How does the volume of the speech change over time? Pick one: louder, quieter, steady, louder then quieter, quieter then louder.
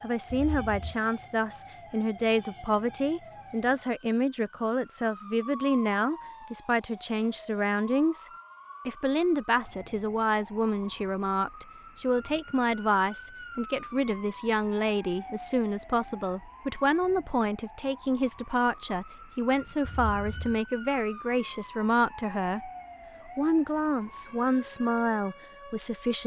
steady.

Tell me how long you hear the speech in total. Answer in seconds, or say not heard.
26 s.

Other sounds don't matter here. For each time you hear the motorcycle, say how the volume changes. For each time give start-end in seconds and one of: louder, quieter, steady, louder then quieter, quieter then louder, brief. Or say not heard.
not heard.